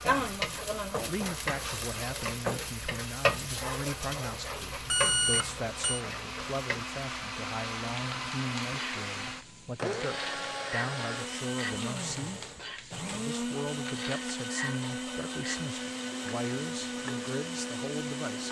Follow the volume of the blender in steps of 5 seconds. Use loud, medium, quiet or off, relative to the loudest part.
medium, loud, loud, loud.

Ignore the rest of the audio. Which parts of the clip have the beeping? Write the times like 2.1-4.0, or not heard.
4.8-6.0.